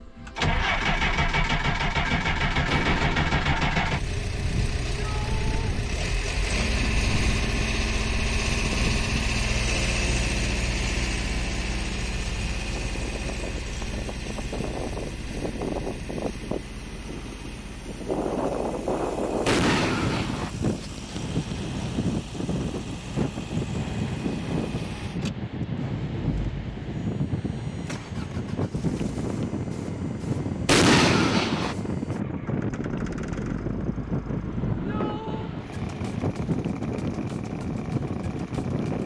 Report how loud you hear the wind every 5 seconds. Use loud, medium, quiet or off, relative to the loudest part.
off, off, medium, loud, loud, loud, loud, loud.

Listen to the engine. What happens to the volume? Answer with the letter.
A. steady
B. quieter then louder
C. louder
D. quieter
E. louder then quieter
D.